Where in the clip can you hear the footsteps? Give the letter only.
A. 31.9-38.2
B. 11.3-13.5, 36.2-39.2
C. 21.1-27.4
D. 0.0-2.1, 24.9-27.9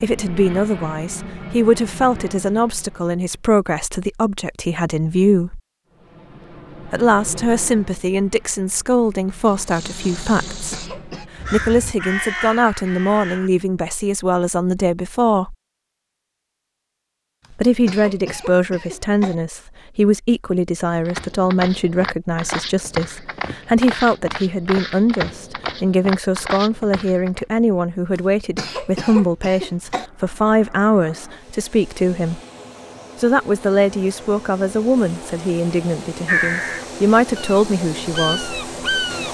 C.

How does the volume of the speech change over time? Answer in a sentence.
The loudness of the speech stays about the same.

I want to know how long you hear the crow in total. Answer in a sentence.
The crow can be heard for 5 seconds in total.